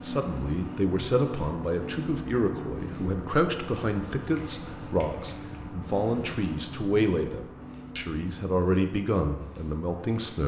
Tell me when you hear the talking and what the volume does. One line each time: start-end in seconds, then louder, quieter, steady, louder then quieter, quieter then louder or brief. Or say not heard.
0.0-10.4 steady.